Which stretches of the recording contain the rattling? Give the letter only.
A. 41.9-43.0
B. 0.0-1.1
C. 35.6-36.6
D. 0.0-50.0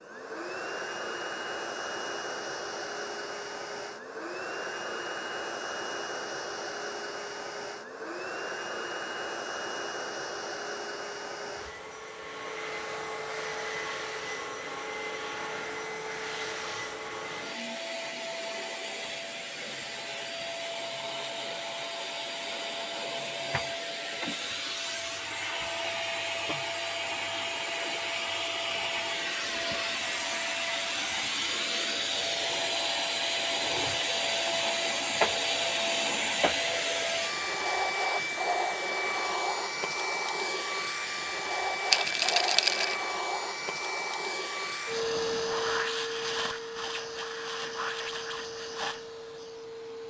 A.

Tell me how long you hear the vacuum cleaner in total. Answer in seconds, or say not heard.
50 s.